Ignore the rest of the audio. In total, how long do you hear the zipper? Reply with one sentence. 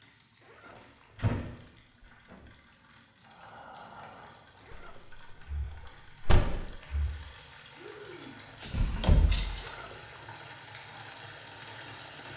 You can hear the zipper for 3 seconds altogether.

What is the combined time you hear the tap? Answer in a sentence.
You can hear the tap for 12 seconds altogether.